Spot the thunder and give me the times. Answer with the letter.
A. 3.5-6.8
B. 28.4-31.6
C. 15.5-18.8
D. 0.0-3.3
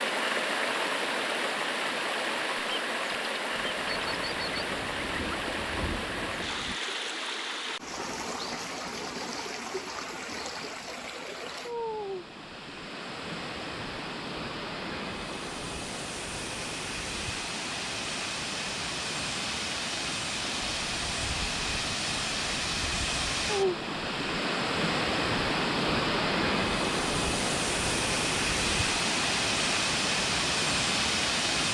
A.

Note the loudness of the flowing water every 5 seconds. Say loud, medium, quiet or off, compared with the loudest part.
loud, medium, medium, medium, loud, loud, loud.